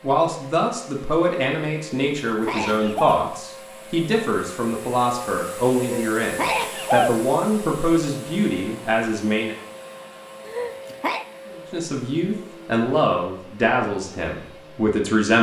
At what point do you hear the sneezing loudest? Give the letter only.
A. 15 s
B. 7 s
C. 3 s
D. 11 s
B.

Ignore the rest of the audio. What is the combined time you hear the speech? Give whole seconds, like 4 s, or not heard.
13 s.